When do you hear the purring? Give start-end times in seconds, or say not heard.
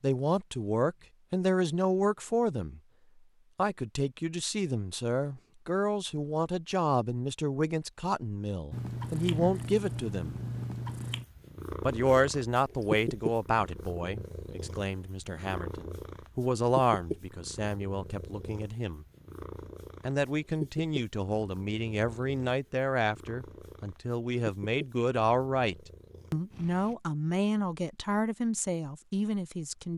8.7-26.9.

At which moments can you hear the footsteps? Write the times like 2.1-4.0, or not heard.
not heard.